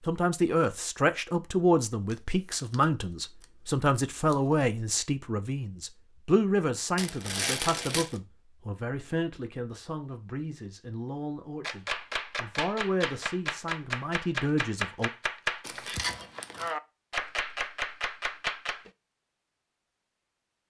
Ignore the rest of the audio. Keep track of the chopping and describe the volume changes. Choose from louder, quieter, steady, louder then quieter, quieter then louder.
steady.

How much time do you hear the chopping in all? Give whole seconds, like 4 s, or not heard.
7 s.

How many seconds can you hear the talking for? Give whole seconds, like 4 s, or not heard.
15 s.